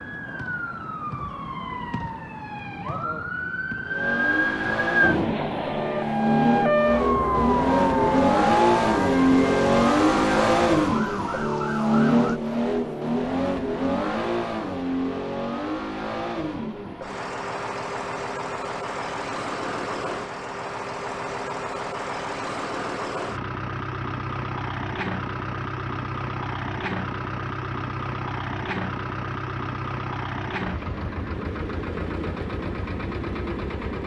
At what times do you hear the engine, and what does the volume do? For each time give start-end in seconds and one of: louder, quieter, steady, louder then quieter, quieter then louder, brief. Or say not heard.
3.9-34.0 quieter.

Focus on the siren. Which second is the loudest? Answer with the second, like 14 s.
7 s.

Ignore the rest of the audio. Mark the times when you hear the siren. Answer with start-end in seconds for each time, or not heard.
0.0-12.4.